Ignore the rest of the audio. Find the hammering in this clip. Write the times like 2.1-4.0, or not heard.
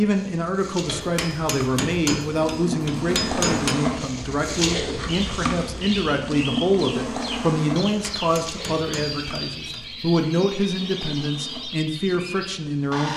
0.8-3.8, 7.8-9.9.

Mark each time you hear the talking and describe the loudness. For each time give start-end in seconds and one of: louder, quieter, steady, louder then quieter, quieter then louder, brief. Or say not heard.
0.0-13.1 steady.